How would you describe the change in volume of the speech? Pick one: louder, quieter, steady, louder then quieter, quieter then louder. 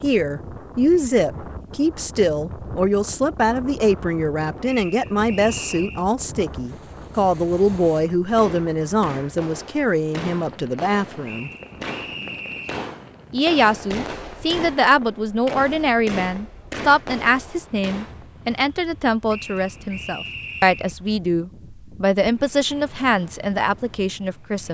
steady.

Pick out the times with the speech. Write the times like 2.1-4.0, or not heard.
0.0-11.5, 13.3-24.6.